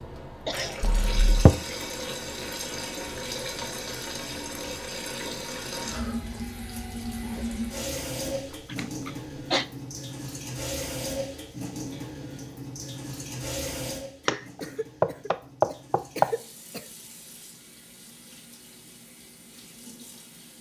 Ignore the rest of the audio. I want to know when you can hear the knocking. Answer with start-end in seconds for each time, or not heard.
0.8-1.6, 14.2-16.2.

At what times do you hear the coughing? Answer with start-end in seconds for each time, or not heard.
0.5-0.9, 8.3-9.7, 14.6-16.9.